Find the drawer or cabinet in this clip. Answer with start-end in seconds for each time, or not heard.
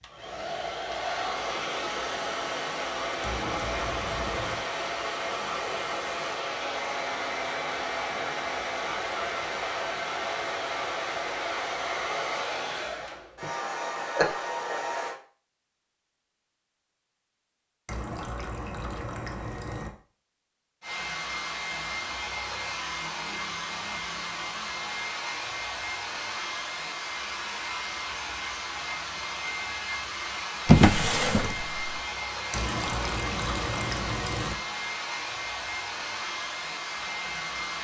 30.6-31.8.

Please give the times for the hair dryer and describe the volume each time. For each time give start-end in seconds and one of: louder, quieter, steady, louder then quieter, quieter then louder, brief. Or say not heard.
0.0-15.2 steady
20.8-37.7 steady.